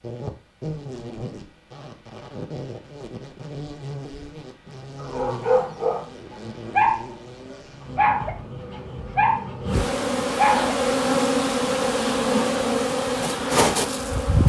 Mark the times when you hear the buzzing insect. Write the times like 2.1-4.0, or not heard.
0.0-14.4.